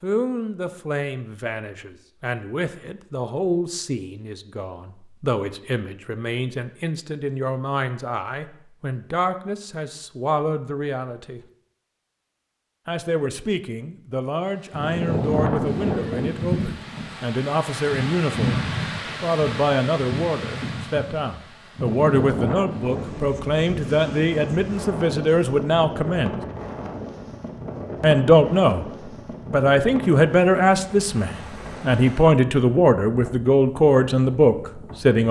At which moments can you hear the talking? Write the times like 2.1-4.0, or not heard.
0.0-11.4, 12.8-26.4, 28.0-28.9, 29.4-35.2.